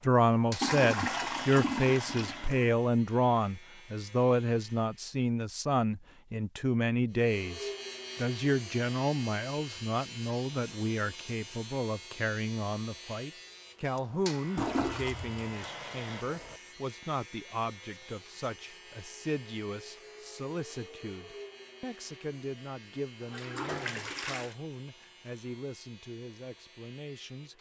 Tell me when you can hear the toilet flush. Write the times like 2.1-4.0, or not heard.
0.6-2.7, 14.6-16.6, 23.2-24.6.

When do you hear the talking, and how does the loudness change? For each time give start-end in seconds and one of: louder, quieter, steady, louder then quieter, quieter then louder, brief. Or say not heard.
0.1-27.5 quieter.